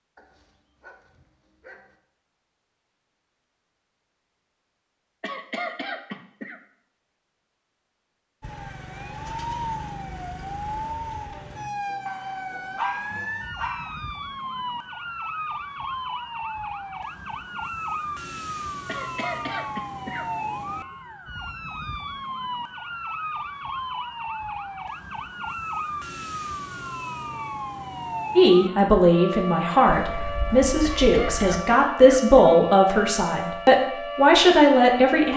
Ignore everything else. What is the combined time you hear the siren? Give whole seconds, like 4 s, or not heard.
27 s.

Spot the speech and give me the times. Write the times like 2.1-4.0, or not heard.
28.4-35.3.